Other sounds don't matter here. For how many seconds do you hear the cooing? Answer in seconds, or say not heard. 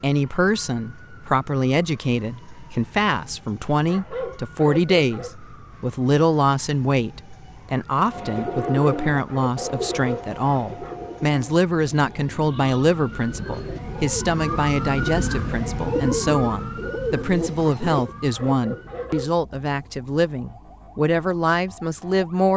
10 s.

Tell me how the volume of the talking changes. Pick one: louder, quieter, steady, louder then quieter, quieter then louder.
steady.